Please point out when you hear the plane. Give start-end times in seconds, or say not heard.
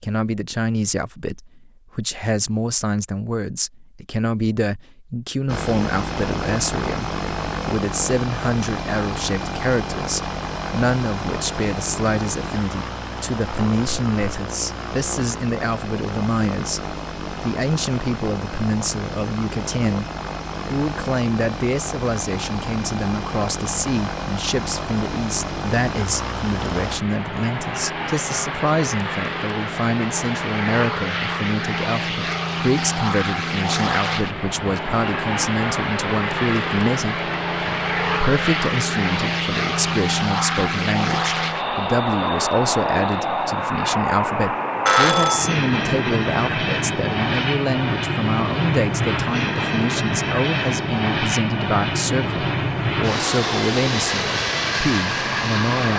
5.5-55.9.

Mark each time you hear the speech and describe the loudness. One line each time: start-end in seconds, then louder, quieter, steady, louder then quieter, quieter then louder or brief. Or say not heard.
0.0-20.1 steady
20.7-55.9 steady.